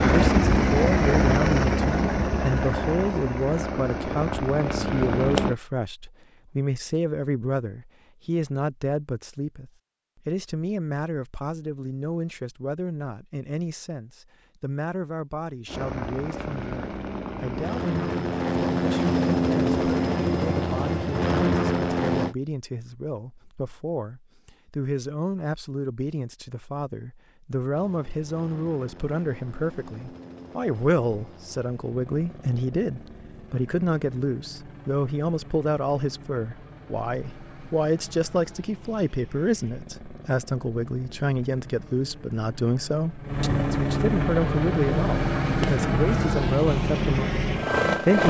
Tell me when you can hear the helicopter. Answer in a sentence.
The helicopter can be heard from 0.0 to 5.5 s, from 15.7 to 22.4 s and from 27.7 to 48.2 s.